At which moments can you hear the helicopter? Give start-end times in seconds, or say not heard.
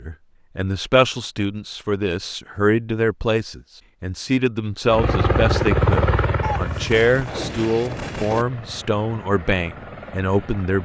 4.8-10.8.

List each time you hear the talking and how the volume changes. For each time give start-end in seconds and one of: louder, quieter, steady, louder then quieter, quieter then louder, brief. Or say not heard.
0.0-10.8 steady.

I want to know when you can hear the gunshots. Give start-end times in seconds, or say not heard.
6.4-8.4.